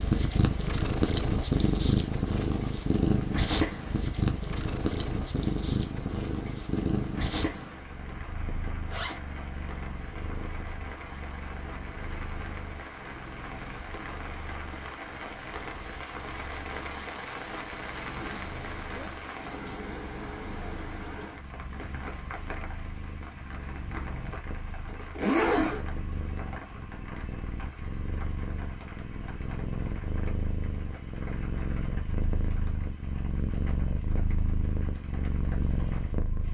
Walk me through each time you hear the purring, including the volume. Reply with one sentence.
You can hear the purring from 0.0 to 36.4 s, getting quieter then louder.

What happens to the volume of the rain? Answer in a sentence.
The volume of the rain goes up, then down.